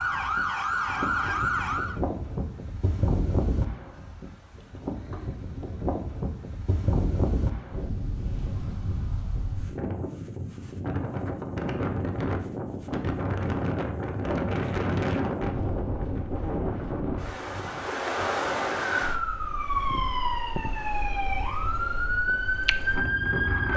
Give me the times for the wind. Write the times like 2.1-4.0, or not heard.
0.0-23.7.